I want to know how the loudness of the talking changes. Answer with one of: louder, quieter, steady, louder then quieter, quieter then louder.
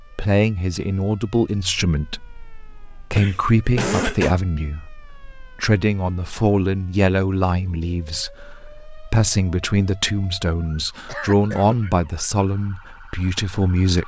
steady.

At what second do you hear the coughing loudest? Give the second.
4 s.